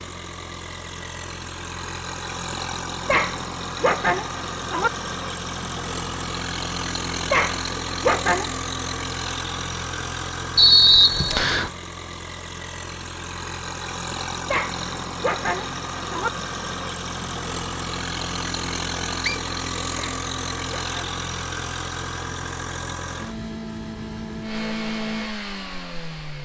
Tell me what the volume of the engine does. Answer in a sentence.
The volume of the engine stays about the same.